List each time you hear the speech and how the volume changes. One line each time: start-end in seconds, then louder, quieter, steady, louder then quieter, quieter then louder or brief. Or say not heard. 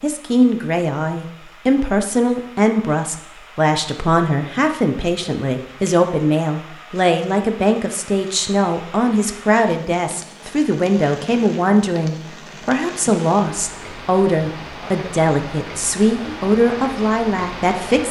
0.0-18.0 steady.